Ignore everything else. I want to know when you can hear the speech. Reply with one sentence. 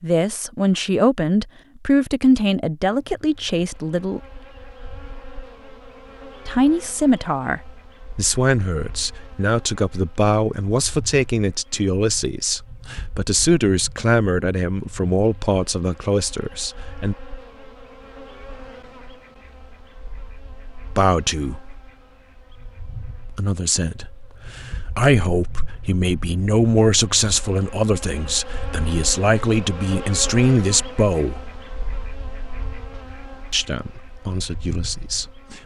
The speech can be heard from 0.0 to 4.2 s, from 6.5 to 17.1 s, from 20.9 to 21.8 s, from 23.4 to 31.4 s and from 33.5 to 35.6 s.